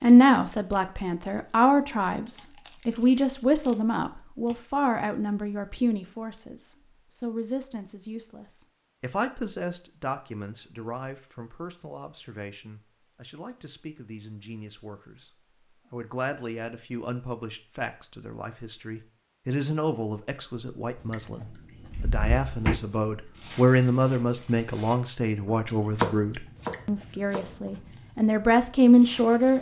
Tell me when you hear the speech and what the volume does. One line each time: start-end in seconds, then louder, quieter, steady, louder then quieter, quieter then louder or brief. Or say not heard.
0.0-29.5 quieter then louder.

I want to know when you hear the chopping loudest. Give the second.
26 s.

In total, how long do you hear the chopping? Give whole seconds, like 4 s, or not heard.
2 s.